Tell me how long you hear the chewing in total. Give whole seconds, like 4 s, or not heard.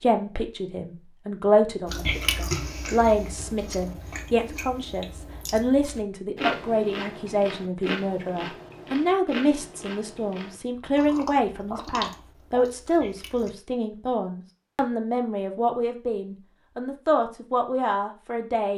12 s.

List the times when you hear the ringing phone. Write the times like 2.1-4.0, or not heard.
not heard.